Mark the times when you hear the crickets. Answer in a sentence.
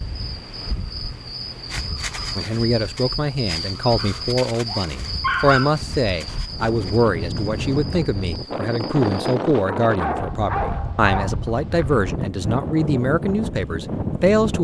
The crickets can be heard from 0.0 to 9.2 s.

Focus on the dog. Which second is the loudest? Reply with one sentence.
The loudest moment of the dog is at 5 seconds.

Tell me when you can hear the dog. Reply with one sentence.
The dog can be heard from 4.0 to 5.7 s and from 9.7 to 11.3 s.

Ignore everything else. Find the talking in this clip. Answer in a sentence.
The talking can be heard from 2.4 to 14.5 s.